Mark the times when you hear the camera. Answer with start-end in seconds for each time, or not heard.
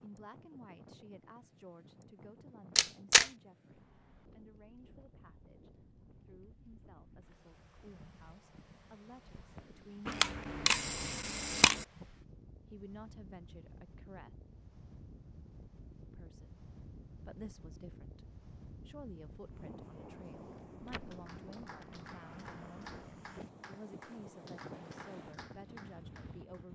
2.8-3.3, 10.1-11.8, 20.6-22.9.